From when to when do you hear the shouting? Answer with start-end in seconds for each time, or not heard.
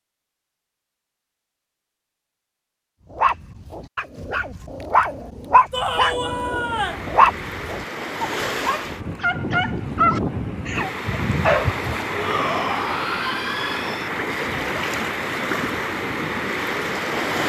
5.7-7.0, 12.1-14.1.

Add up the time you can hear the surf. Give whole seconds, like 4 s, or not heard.
11 s.